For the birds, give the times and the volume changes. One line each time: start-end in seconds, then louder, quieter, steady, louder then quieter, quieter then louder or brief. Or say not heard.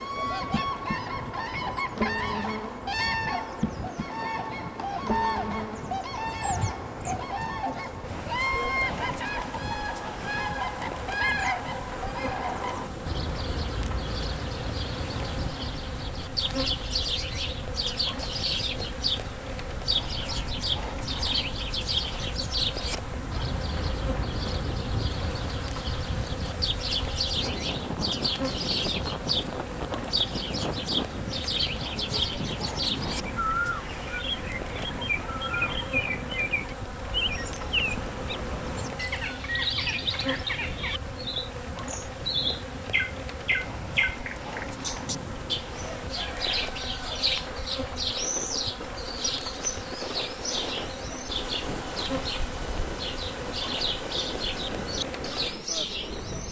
0.0-56.4 steady.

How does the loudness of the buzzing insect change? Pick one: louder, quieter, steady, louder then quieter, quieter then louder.
steady.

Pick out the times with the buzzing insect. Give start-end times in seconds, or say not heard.
0.0-56.4.